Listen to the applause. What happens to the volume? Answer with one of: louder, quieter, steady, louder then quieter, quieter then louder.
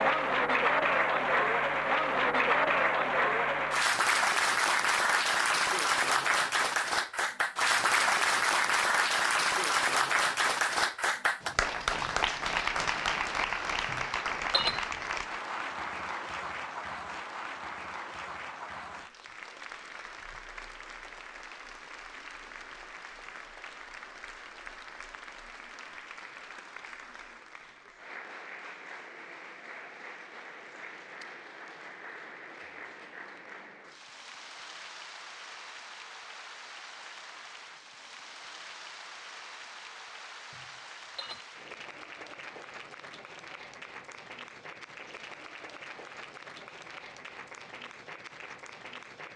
quieter.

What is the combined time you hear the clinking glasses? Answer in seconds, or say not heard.
2 s.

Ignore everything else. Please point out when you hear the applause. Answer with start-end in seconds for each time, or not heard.
0.0-49.3.